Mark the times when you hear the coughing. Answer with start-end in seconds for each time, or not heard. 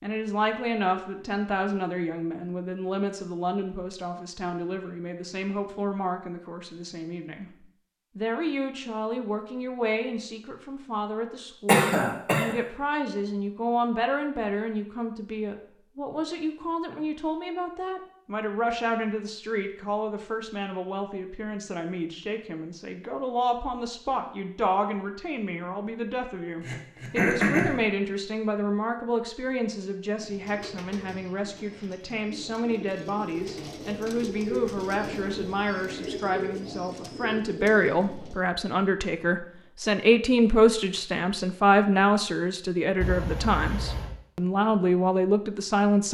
11.7-12.6, 26.6-27.8, 43.0-44.1.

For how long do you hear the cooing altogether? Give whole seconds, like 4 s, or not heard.
8 s.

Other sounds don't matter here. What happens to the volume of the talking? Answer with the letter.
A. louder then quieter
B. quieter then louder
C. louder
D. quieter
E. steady
C.